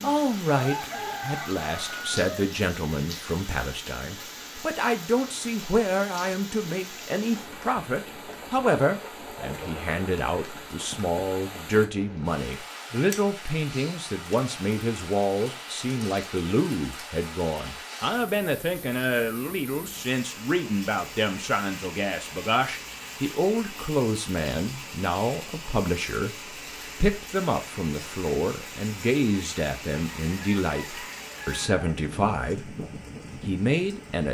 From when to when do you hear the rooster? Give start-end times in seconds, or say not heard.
0.5-2.5, 29.9-31.9.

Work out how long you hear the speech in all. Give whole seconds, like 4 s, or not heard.
33 s.